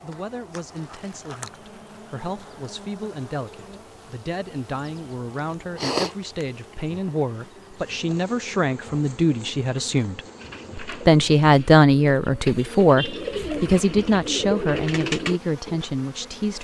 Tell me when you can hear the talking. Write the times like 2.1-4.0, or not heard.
0.0-16.5.